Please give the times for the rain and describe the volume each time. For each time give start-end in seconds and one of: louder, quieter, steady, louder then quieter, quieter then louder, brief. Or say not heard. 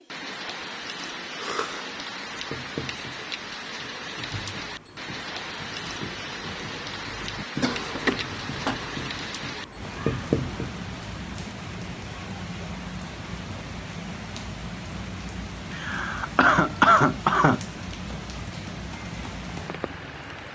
0.0-20.4 steady.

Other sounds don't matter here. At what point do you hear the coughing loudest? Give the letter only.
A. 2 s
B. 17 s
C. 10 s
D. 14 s
B.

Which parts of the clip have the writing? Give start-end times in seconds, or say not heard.
2.3-10.8.